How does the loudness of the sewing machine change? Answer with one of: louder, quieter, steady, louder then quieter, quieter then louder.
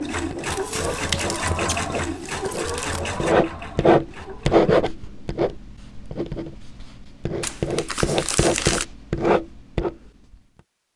quieter.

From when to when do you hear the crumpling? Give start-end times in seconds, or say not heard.
0.5-3.0, 7.4-8.8.